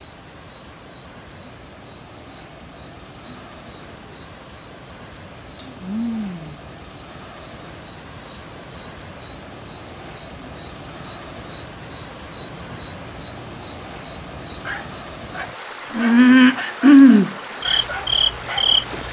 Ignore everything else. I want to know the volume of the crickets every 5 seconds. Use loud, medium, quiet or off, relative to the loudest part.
quiet, quiet, quiet, loud.